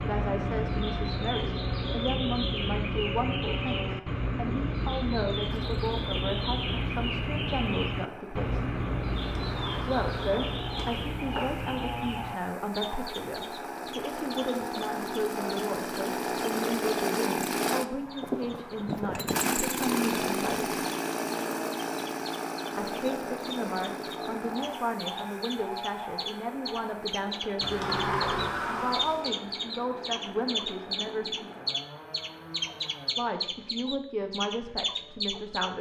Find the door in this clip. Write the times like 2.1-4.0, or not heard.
9.1-11.7, 27.6-29.3.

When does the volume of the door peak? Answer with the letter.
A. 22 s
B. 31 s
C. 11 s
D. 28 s
D.